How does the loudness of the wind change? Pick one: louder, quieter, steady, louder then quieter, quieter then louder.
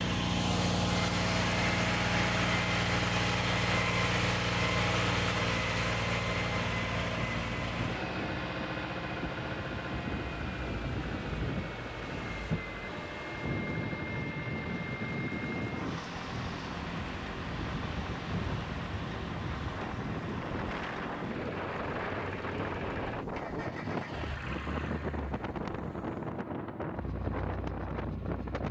steady.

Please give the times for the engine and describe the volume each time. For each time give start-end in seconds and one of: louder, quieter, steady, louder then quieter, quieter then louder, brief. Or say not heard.
0.0-28.6 quieter.